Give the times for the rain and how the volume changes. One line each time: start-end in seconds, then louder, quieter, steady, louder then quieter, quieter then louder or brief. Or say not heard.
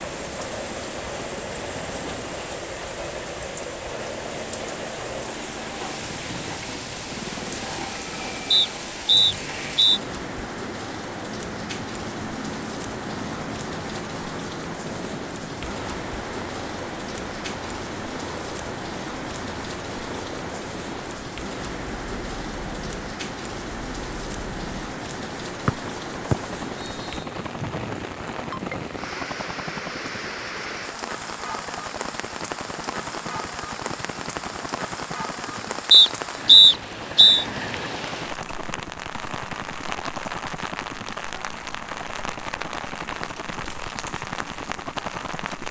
0.0-45.6 steady.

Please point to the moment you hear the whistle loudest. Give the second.
37 s.